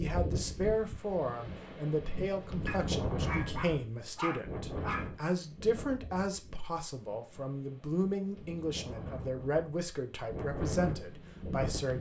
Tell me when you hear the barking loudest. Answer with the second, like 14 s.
4 s.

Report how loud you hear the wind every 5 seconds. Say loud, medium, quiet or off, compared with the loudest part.
loud, medium, loud.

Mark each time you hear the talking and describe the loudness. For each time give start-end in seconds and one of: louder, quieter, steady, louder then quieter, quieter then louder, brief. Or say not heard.
0.0-11.9 steady.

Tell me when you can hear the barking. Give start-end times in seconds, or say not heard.
2.6-5.1.